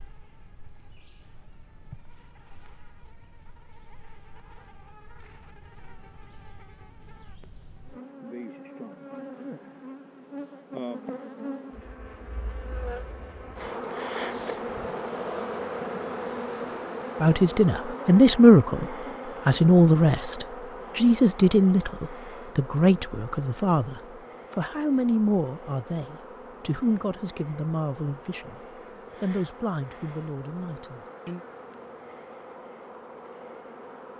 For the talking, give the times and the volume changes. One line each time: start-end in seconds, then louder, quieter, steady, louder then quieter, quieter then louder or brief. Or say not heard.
17.2-31.4 quieter.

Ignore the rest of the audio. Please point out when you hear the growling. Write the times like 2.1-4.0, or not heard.
not heard.